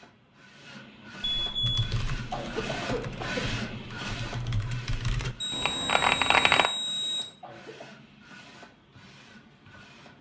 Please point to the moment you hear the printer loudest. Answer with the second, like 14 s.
3 s.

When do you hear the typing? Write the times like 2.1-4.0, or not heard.
1.6-6.7.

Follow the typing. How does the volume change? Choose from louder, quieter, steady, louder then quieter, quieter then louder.
louder.